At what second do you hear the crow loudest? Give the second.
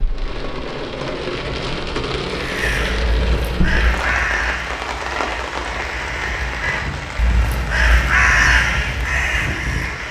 8 s.